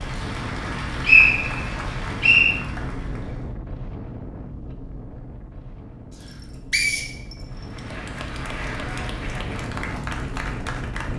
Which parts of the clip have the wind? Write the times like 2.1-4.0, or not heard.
0.0-11.1.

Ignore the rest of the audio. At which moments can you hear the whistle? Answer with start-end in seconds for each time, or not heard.
0.6-2.5, 6.7-7.3.